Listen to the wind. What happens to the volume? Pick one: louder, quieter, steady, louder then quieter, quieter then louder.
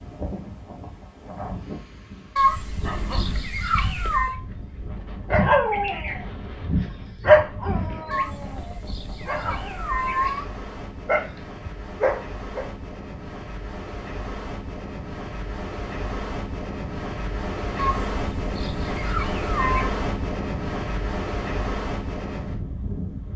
louder.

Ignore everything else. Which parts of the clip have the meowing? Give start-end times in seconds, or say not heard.
2.4-4.3, 8.1-10.4, 17.8-19.9.